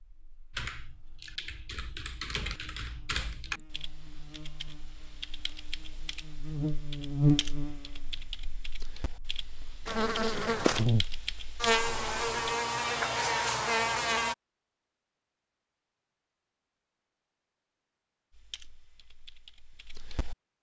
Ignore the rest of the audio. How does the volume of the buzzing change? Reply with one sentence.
The volume of the buzzing goes up.